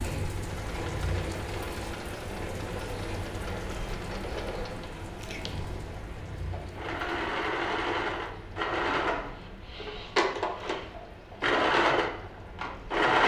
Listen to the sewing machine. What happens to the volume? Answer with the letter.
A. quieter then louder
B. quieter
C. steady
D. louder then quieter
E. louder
E.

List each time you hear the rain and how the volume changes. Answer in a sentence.
You can hear the rain from 0.0 to 13.1 s, getting quieter.